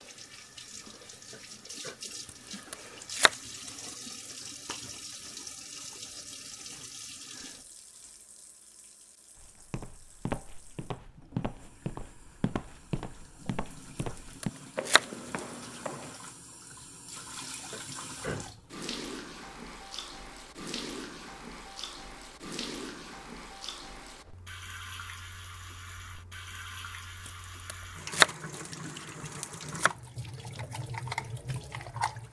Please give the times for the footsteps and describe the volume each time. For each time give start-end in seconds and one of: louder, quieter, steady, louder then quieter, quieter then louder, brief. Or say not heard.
9.3-16.2 steady.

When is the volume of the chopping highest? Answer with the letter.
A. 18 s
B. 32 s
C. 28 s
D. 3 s
C.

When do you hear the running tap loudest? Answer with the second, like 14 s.
32 s.